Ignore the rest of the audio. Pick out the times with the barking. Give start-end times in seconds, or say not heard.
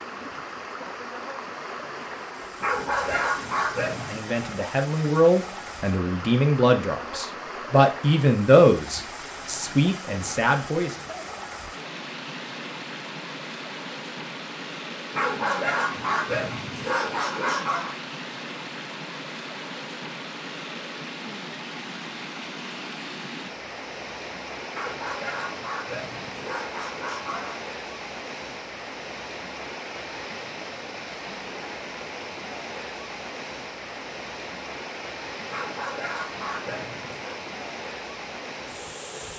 2.6-4.2, 15.1-17.9, 24.7-27.6, 35.5-37.4.